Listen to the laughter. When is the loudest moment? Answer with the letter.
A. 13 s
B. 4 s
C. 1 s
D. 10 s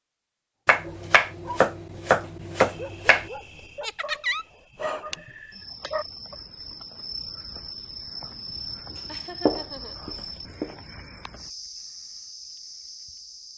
B.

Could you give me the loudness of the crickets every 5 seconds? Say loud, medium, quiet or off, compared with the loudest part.
medium, loud, loud.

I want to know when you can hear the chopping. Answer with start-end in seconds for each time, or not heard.
0.7-3.3, 9.4-10.7.